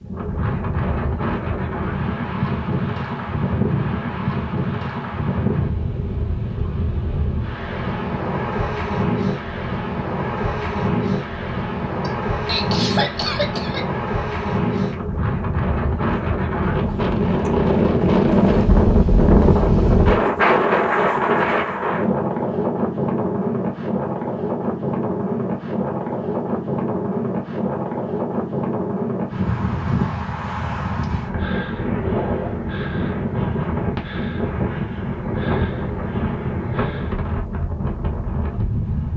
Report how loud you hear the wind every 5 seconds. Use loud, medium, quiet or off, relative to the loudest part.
medium, medium, medium, loud, loud, medium, medium, medium.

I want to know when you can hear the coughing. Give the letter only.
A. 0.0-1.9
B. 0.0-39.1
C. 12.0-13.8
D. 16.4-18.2
C.